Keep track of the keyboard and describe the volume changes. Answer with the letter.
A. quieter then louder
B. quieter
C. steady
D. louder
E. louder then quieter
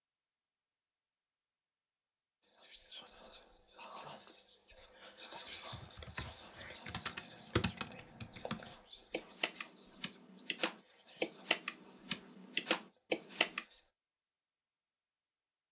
D.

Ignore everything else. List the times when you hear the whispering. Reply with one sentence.
The whispering can be heard from 2.4 to 13.9 s.